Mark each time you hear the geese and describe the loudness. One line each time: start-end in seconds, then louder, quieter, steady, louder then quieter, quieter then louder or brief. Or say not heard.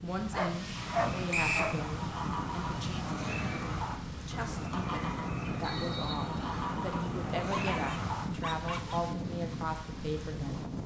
0.8-8.2 steady.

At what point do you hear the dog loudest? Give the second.
1 s.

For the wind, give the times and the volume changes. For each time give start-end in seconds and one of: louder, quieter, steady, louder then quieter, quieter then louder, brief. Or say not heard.
0.0-10.8 steady.